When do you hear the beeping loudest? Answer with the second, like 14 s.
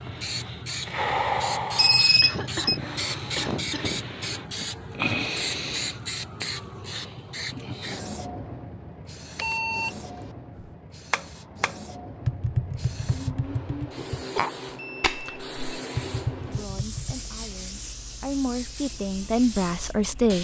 2 s.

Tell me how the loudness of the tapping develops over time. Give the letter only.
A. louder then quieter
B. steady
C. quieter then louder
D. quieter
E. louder
B.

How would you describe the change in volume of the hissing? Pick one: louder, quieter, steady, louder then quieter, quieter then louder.
quieter.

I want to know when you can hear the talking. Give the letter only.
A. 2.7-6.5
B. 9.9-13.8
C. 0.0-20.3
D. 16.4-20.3
D.